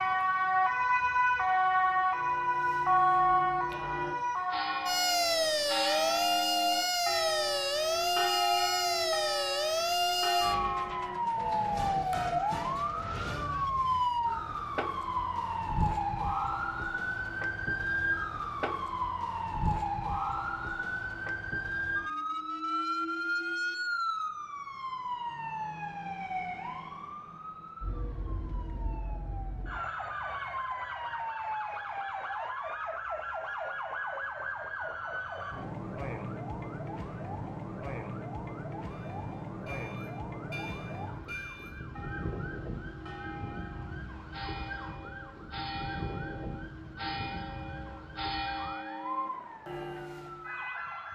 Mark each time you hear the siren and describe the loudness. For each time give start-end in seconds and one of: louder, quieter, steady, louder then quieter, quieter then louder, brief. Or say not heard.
0.0-51.1 quieter.